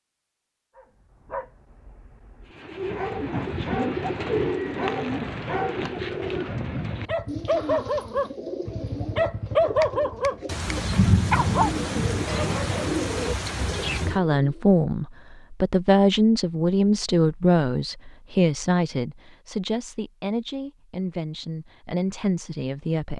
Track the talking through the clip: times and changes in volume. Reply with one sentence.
The talking can be heard from 13.8 to 23.1 s, getting quieter.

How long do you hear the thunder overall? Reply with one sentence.
The thunder can be heard for 4 seconds in total.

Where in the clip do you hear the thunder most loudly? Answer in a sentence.
The volume of the thunder peaks at 11 seconds.